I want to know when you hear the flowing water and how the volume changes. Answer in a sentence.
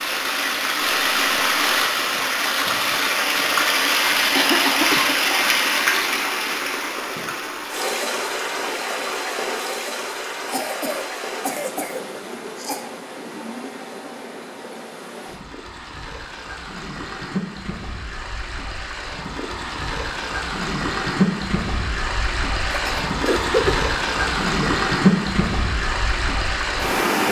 The flowing water can be heard from 0.0 to 27.2 s, getting quieter then louder.